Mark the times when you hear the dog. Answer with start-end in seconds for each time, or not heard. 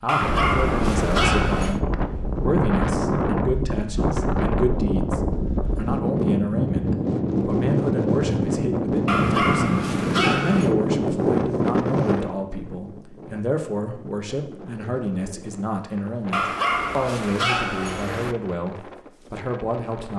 0.1-1.8, 9.1-10.7, 16.3-18.4.